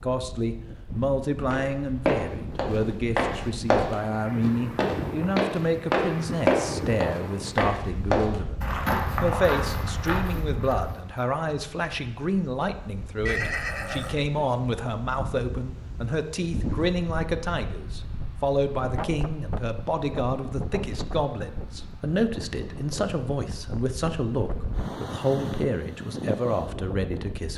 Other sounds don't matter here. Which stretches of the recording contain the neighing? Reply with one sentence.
The neighing can be heard from 13.2 to 14.4 s.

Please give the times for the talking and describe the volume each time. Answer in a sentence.
You can hear the talking from 0.0 to 27.5 s, at a steady volume.